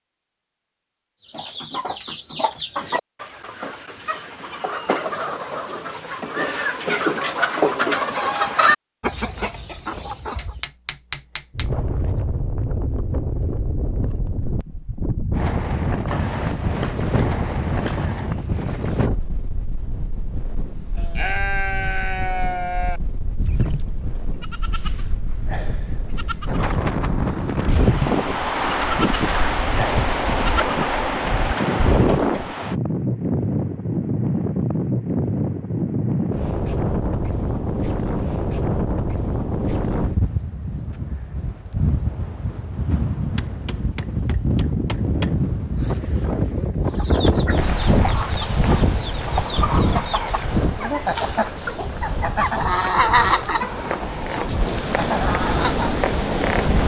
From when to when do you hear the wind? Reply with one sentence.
The wind can be heard from 11.6 to 56.8 s.